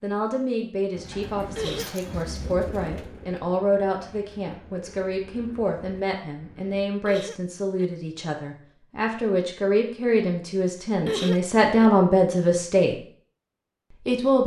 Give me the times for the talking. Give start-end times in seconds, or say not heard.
0.0-12.9, 13.9-14.4.